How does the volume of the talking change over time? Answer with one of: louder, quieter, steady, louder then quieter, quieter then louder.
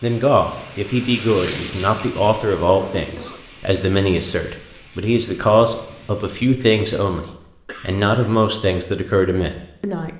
steady.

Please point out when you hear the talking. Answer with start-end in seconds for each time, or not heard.
0.0-10.1.